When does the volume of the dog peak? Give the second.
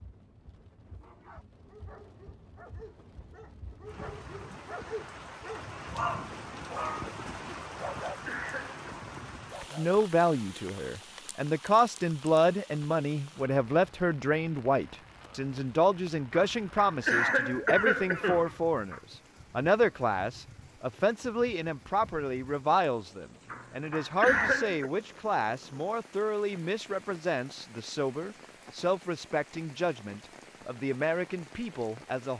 6 s.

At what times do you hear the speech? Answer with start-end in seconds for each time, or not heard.
9.8-32.3.